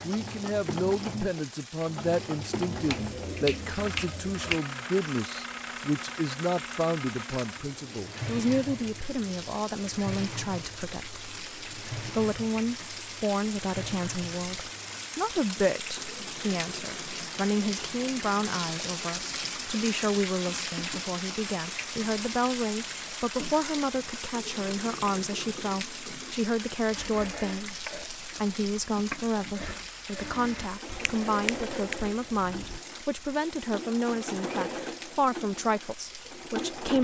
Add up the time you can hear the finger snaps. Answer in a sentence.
The finger snaps can be heard for 4 seconds in total.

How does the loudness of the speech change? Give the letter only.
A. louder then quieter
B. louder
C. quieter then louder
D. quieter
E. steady
E.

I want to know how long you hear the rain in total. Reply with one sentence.
You can hear the rain for 37 seconds altogether.